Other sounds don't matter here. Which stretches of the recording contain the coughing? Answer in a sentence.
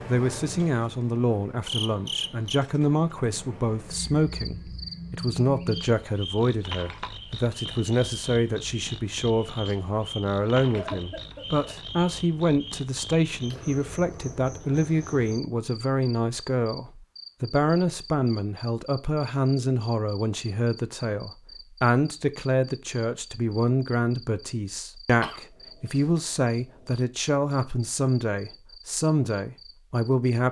You can hear the coughing from 10.7 to 11.8 s and from 25.2 to 26.1 s.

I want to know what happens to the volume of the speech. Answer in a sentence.
The volume of the speech stays about the same.